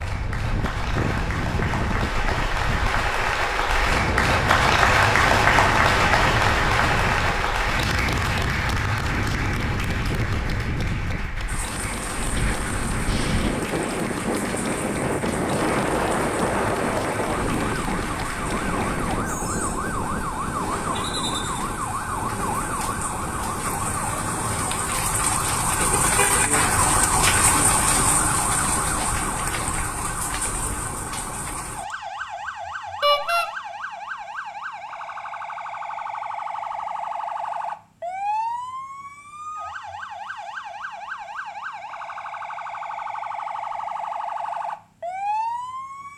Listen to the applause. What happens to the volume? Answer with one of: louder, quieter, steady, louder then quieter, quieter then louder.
louder then quieter.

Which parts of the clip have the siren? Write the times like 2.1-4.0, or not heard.
11.4-46.1.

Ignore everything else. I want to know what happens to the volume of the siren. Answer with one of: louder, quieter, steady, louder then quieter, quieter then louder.
louder then quieter.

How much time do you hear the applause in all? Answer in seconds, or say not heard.
19 s.